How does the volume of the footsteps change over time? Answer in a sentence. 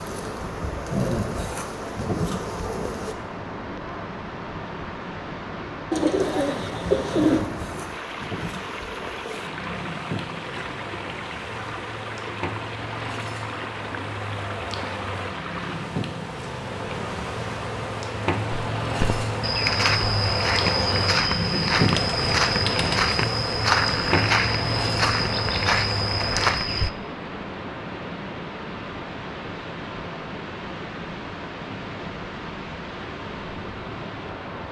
The volume of the footsteps stays about the same.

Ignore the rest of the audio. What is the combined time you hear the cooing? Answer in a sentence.
The cooing can be heard for 3 seconds in total.